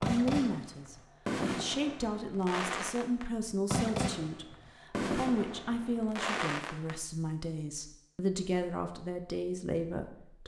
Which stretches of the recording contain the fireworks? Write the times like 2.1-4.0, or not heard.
0.0-7.0.